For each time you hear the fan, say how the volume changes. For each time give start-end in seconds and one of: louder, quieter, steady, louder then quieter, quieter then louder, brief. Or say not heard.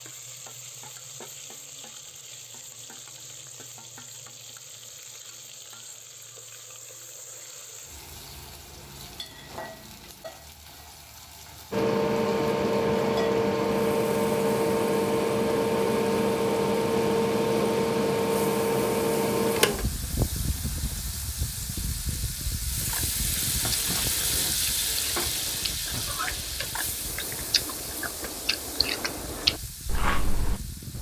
11.7-30.9 quieter.